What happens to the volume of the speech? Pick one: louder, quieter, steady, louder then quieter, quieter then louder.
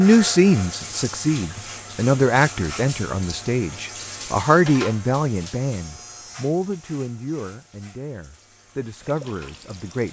quieter.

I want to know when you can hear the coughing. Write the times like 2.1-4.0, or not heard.
not heard.